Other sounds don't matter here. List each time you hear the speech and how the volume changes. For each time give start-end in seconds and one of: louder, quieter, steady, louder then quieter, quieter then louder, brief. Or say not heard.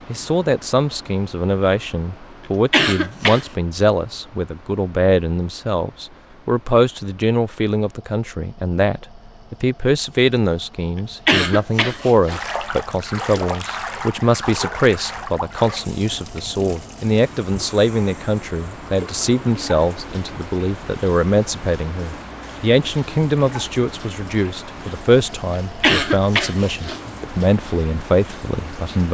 0.1-29.1 steady.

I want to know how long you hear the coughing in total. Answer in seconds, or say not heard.
3 s.